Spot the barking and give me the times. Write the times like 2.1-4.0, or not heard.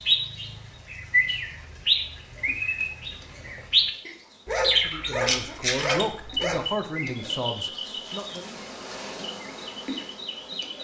4.5-6.8.